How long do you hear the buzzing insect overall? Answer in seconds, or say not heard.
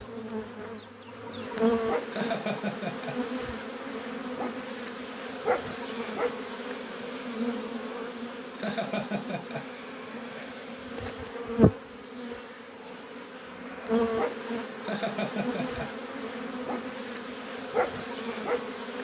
19 s.